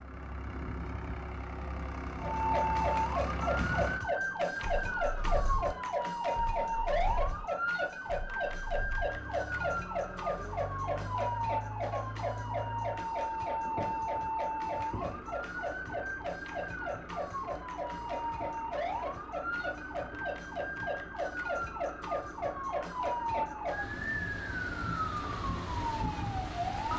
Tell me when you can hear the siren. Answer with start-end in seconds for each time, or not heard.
2.1-26.9.